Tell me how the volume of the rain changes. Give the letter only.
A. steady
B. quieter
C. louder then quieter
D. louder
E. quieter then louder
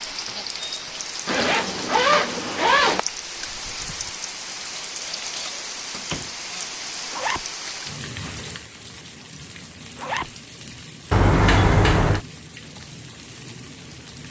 B.